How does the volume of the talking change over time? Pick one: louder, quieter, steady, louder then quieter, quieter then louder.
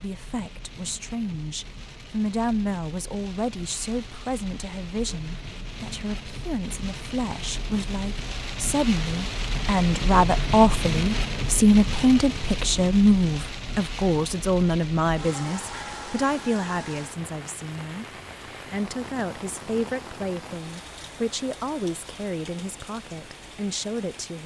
louder then quieter.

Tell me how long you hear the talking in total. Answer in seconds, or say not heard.
24 s.